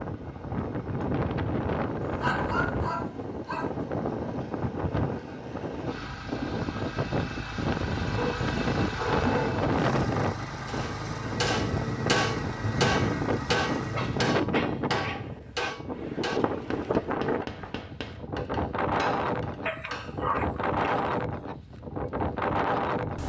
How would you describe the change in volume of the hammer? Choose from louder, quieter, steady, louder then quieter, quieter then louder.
quieter.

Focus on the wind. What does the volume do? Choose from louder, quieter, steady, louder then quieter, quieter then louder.
steady.